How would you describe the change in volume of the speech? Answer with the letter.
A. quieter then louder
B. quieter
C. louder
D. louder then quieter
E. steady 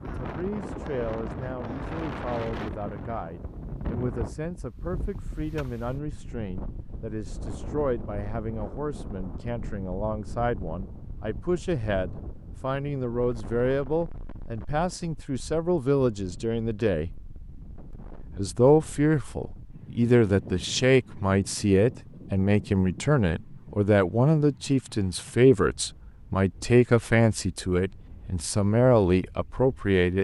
C.